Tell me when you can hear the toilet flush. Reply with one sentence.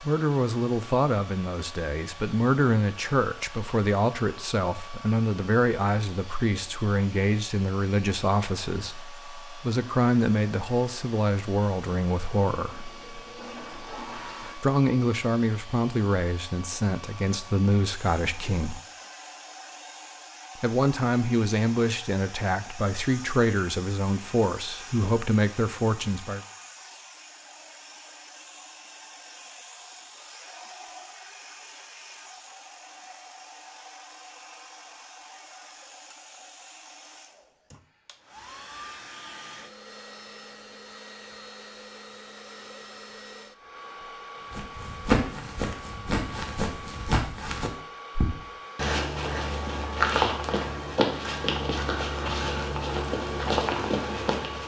The toilet flush can be heard from 12.7 to 14.6 s.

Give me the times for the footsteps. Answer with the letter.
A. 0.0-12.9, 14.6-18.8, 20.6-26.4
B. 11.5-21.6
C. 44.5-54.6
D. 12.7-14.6
C.